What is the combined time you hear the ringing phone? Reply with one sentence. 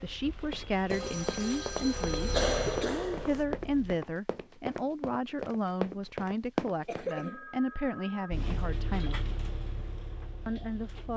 The ringing phone can be heard for 3 seconds in total.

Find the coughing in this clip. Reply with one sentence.
You can hear the coughing from 2.3 to 3.5 s and from 6.8 to 7.5 s.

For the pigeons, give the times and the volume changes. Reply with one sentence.
You can't hear the pigeons here.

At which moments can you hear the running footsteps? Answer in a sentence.
The running footsteps can be heard from 0.5 to 7.1 s.